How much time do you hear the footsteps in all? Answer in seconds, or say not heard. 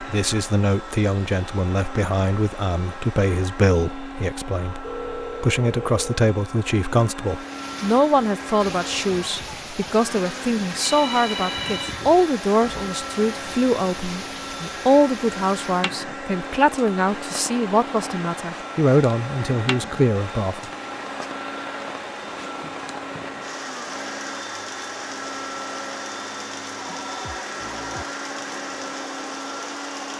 not heard.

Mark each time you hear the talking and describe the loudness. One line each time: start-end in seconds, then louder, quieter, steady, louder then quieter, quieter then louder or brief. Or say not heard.
0.0-20.6 steady.